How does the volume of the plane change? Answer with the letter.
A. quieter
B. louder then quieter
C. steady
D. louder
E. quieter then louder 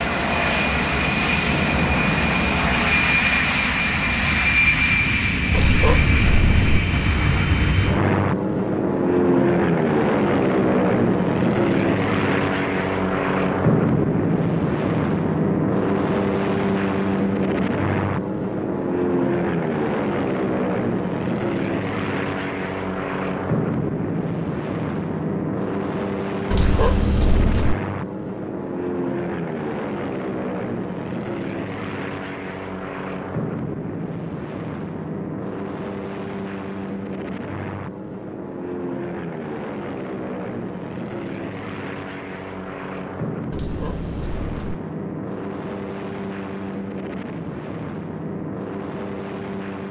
A.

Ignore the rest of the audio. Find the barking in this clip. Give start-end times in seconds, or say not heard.
5.5-6.8, 26.5-27.8, 43.5-44.8.